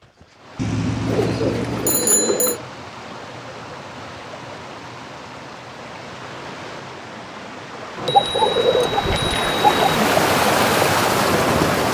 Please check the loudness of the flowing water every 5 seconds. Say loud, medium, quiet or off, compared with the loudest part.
quiet, medium, loud.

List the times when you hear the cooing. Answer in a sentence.
You can hear the cooing from 1.1 to 2.6 s and from 8.1 to 10.1 s.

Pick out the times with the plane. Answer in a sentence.
You can't hear the plane here.